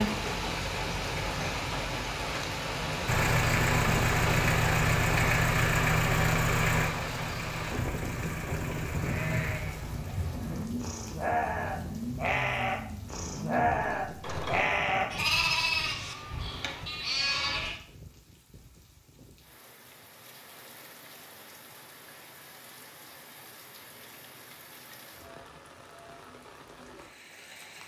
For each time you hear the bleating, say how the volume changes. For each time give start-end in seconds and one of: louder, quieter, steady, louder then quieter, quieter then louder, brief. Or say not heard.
8.9-17.8 louder then quieter.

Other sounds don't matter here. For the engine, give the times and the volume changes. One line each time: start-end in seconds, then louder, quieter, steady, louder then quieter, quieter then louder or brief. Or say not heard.
3.0-14.7 quieter.